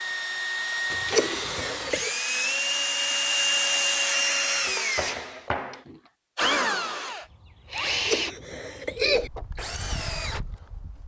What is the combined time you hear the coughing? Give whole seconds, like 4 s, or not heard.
3 s.